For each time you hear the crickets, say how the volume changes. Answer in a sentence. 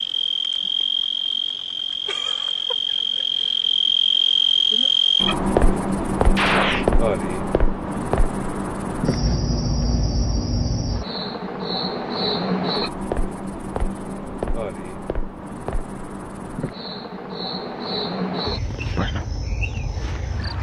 The crickets can be heard from 0.0 to 20.5 s, getting quieter.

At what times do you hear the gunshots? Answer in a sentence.
You can hear the gunshots from 6.3 to 6.8 s.